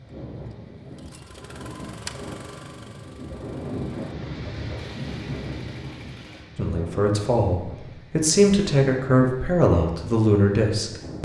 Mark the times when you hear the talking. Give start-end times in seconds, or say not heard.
6.5-11.2.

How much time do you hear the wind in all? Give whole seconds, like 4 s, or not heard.
11 s.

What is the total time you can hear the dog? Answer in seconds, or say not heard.
not heard.